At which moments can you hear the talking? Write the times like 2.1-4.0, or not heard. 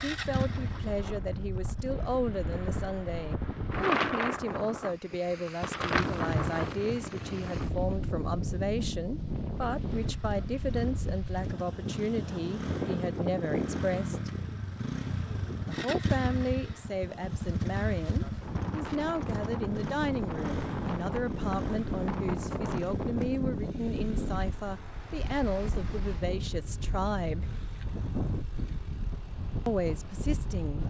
0.0-14.3, 15.7-27.6, 29.6-30.8.